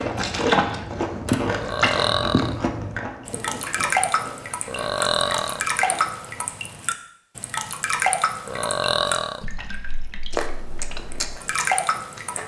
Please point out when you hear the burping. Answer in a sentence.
The burping can be heard from 1.6 to 2.6 s, from 4.7 to 5.7 s and from 8.4 to 9.4 s.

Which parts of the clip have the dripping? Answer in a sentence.
The dripping can be heard from 0.0 to 12.4 s.